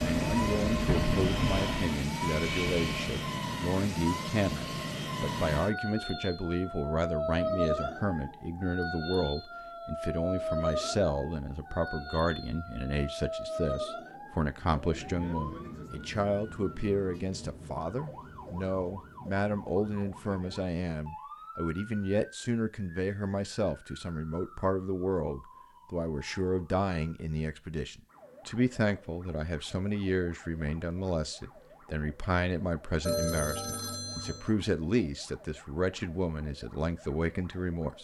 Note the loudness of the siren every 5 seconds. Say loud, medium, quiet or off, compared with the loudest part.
loud, loud, loud, medium, quiet, quiet, quiet, quiet.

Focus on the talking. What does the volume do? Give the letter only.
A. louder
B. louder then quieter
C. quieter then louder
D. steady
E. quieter
D.